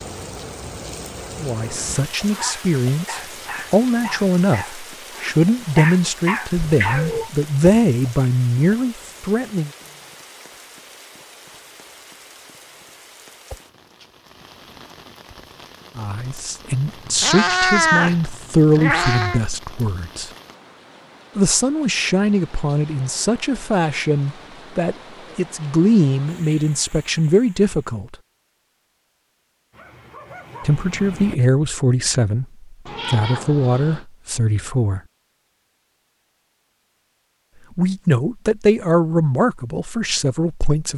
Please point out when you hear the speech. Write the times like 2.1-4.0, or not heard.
1.4-9.7, 15.9-20.3, 21.4-28.1, 30.6-35.0, 37.8-40.9.